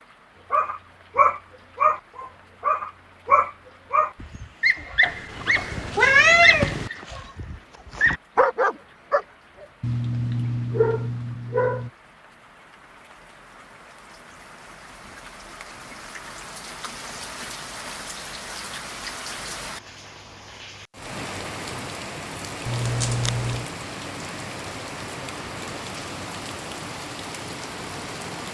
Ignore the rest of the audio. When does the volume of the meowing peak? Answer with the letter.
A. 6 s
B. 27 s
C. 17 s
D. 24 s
A.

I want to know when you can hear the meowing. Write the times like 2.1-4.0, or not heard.
5.0-6.9, 22.6-23.6.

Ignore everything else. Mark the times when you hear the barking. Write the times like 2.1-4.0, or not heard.
0.5-11.9.